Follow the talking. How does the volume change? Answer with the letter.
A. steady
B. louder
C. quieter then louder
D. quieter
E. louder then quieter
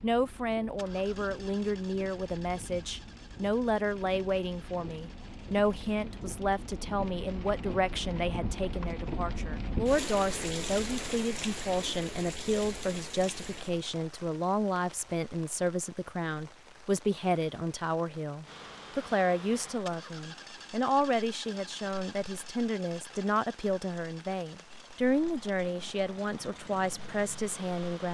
A.